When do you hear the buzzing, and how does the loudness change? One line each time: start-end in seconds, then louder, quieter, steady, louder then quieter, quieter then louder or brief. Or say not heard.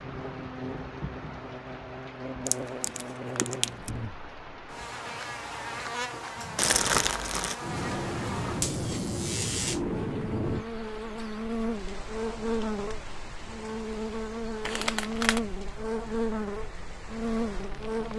0.0-18.1 louder.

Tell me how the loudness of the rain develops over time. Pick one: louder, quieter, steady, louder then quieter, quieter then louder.
louder then quieter.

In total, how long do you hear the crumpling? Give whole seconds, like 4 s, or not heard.
3 s.